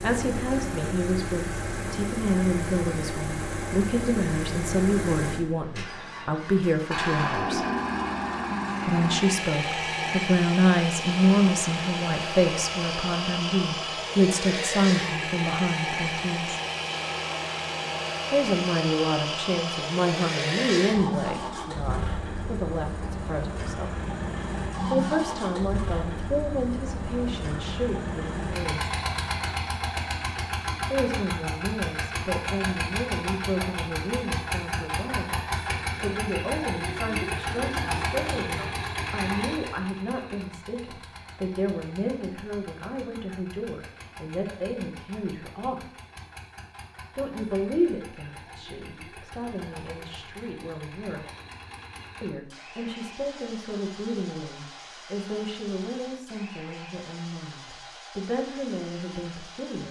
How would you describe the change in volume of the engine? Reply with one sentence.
The volume of the engine goes down.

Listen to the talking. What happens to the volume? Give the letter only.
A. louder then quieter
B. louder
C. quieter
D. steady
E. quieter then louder
C.